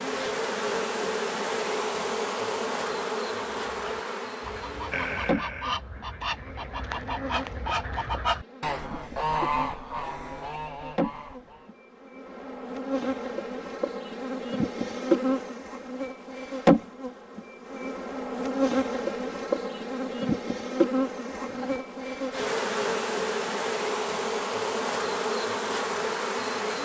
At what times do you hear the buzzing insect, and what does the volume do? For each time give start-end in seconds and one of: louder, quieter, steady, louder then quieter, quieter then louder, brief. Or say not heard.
0.0-26.8 quieter then louder.